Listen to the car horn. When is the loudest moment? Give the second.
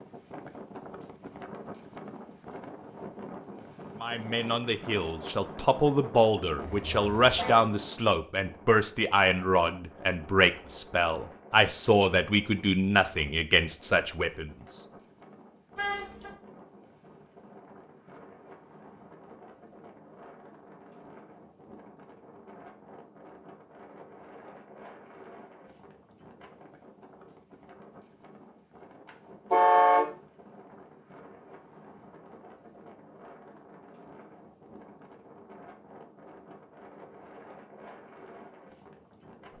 30 s.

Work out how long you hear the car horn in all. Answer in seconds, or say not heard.
2 s.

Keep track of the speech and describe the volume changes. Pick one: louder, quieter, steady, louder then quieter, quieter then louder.
steady.